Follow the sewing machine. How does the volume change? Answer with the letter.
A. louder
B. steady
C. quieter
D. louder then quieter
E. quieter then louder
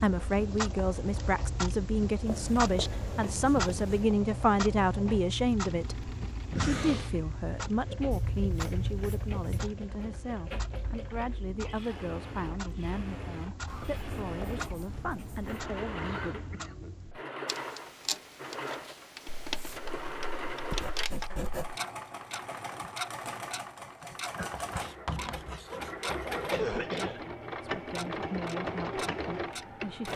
A.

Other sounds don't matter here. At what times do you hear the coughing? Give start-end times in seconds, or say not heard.
6.5-7.2, 15.9-17.2, 26.5-27.2.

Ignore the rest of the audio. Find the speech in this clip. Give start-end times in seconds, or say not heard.
0.0-16.4, 26.6-30.1.